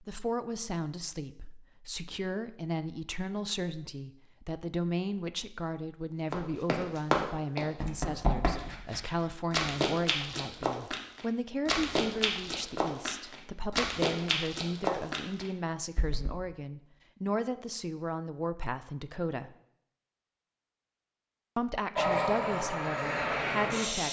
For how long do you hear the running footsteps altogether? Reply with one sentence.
The running footsteps can be heard for 10 seconds in total.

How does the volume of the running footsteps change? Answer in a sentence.
The loudness of the running footsteps stays about the same.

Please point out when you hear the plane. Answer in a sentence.
The plane can be heard from 21.9 to 24.0 s.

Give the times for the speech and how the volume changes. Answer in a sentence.
You can hear the speech from 0.0 to 19.5 s, at a steady volume; and briefly from 21.6 to 24.0 s.